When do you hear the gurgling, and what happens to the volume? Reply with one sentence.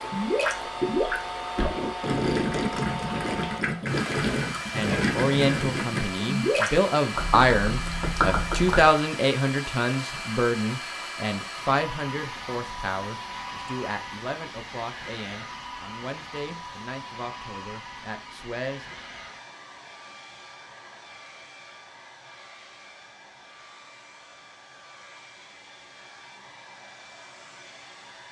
The gurgling can be heard from 0.0 to 8.9 s, at a steady volume.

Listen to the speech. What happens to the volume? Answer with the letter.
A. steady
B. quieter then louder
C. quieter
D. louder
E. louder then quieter
C.